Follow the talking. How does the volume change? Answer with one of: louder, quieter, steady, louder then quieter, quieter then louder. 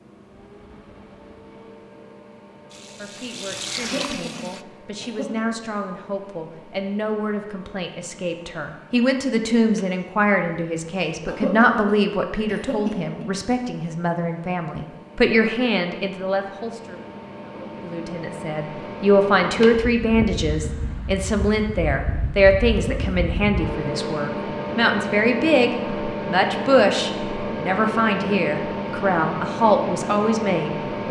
louder.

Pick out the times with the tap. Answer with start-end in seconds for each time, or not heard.
2.7-4.7.